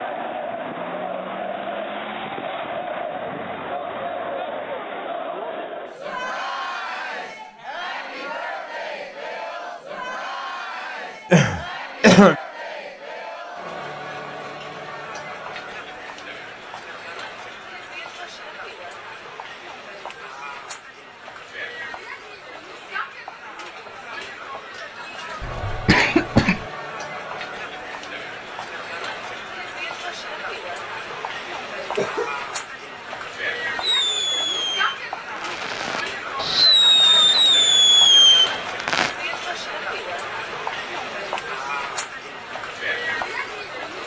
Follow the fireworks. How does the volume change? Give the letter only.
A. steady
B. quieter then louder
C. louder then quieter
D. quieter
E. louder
B.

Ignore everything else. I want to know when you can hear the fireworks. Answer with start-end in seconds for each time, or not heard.
33.8-39.1.